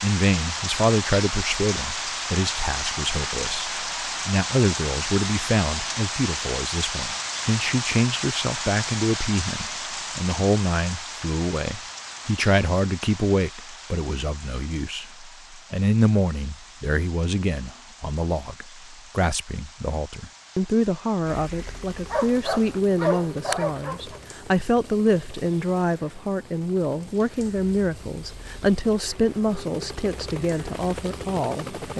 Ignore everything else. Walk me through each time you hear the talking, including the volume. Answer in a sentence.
The talking can be heard from 0.0 to 31.9 s, at a steady volume.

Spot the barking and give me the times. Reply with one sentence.
The barking can be heard from 22.1 to 24.2 s.